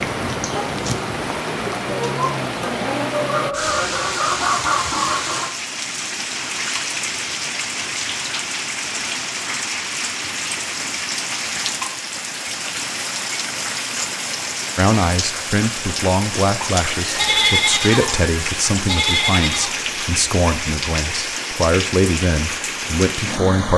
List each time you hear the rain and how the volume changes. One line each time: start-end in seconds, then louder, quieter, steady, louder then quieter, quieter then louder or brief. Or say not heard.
0.0-23.7 steady.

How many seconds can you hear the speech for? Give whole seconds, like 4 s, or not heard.
9 s.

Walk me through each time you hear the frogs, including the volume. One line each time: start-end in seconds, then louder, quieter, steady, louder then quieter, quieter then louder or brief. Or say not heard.
not heard.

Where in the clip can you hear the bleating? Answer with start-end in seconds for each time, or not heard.
16.9-19.7.